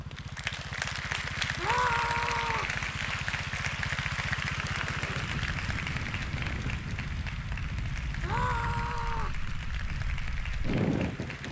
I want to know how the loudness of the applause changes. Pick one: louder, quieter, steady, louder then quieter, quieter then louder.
quieter.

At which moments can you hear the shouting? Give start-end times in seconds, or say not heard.
1.6-2.8, 8.2-9.4.